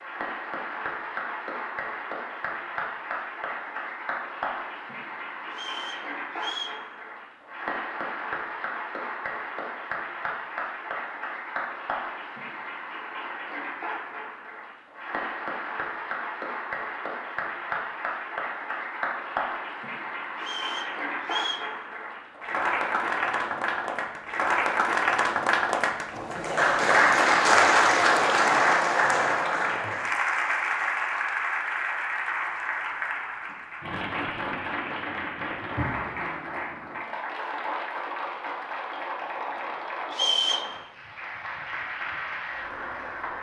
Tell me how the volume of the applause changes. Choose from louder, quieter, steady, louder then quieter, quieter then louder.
louder then quieter.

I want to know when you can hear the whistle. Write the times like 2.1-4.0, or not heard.
5.5-6.8, 20.4-21.7, 40.1-40.7.